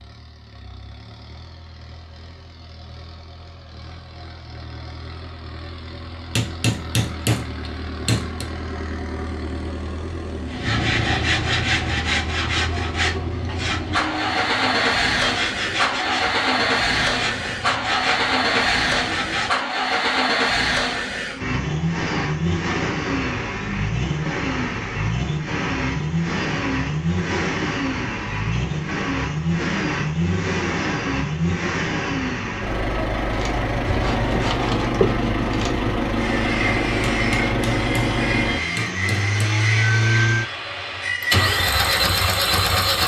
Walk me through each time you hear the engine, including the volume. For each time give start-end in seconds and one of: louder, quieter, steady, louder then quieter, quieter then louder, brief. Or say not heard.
0.0-43.0 louder.